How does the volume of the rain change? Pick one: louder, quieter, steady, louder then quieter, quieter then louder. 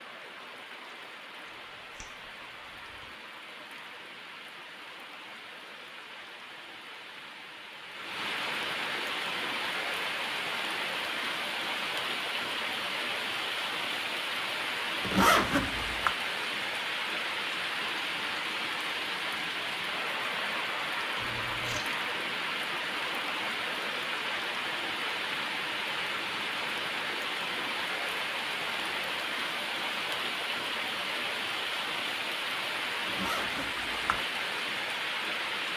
louder.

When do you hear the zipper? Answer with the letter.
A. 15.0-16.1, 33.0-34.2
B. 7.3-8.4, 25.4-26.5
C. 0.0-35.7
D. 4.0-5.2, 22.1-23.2
A.